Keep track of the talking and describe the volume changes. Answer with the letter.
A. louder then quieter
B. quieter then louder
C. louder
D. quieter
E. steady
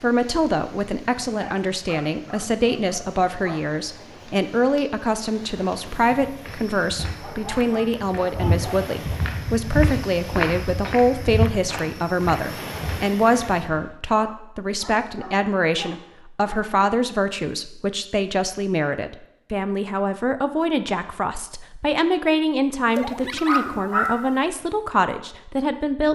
E.